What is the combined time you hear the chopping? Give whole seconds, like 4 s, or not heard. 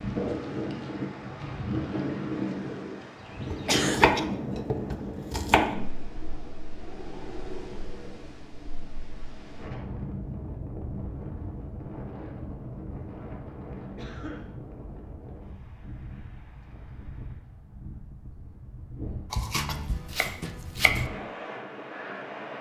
4 s.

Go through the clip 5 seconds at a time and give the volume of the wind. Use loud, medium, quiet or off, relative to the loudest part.
loud, medium, medium, quiet, medium.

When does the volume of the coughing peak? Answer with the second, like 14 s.
4 s.